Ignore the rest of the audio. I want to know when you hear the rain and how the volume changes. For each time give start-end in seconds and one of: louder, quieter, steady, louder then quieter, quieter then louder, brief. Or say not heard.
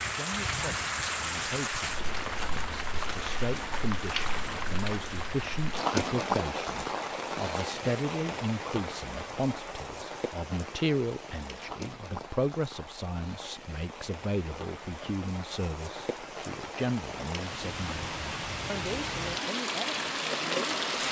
0.0-21.0 quieter then louder.